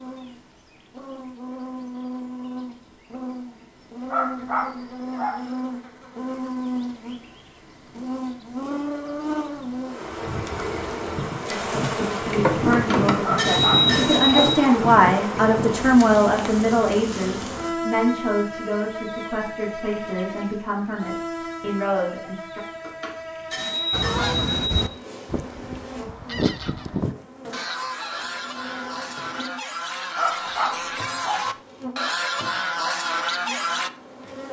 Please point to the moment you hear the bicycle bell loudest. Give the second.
14 s.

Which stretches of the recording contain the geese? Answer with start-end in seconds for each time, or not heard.
23.9-33.9.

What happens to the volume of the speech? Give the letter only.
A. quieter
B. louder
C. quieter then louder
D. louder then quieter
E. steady
D.